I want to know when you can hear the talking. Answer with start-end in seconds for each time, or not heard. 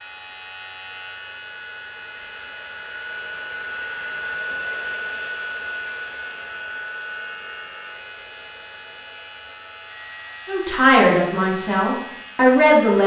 10.4-13.0.